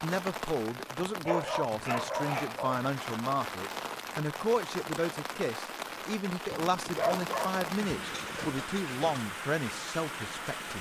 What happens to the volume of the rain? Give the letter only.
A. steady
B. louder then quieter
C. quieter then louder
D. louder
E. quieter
A.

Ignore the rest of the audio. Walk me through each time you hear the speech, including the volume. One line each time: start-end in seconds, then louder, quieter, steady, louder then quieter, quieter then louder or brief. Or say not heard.
0.0-10.7 steady.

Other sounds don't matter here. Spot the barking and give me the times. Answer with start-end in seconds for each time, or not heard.
1.1-2.8, 6.5-9.2.